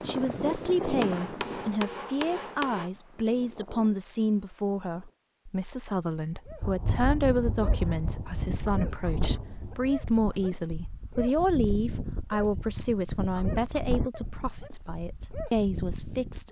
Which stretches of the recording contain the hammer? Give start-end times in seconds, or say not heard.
1.0-2.9.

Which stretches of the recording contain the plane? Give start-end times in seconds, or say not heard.
0.0-5.2.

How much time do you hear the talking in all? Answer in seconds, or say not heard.
16 s.